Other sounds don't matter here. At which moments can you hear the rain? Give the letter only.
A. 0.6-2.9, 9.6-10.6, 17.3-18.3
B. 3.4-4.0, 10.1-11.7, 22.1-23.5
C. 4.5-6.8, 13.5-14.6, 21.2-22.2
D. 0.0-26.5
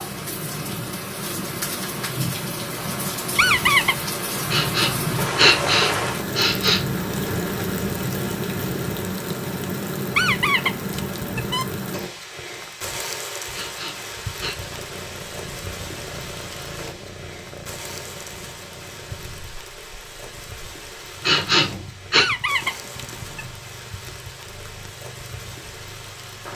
D.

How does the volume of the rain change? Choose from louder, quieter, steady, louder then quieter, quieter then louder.
quieter.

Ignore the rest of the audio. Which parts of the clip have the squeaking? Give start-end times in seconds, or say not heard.
3.4-4.0, 10.1-11.7, 22.1-23.5.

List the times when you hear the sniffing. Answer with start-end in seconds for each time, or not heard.
4.5-6.8, 13.5-14.6, 21.2-22.2.